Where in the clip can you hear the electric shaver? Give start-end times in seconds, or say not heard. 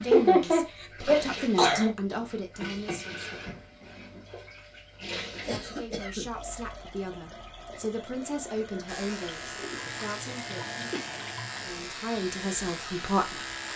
8.8-13.7.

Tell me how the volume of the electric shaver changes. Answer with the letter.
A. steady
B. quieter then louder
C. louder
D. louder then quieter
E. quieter
A.